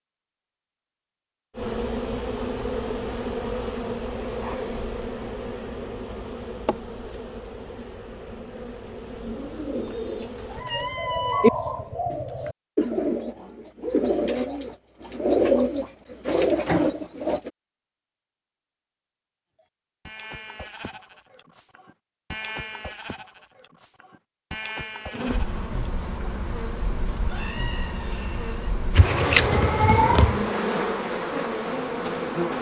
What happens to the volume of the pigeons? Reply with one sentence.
The loudness of the pigeons goes up.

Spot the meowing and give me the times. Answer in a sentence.
The meowing can be heard from 10.2 to 11.5 s and from 28.9 to 30.5 s.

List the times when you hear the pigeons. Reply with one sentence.
You can hear the pigeons from 9.2 to 17.5 s.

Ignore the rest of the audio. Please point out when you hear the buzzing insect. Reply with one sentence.
You can hear the buzzing insect from 1.6 to 10.7 s and from 25.1 to 32.5 s.